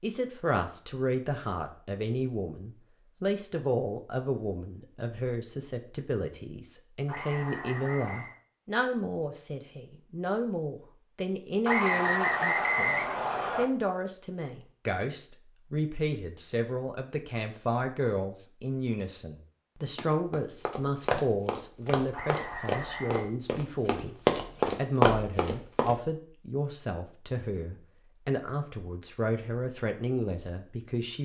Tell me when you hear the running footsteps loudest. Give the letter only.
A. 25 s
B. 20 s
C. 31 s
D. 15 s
A.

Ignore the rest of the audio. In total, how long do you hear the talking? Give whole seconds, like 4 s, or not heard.
31 s.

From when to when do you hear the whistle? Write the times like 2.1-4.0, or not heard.
7.0-8.3, 11.7-13.7, 22.1-23.3.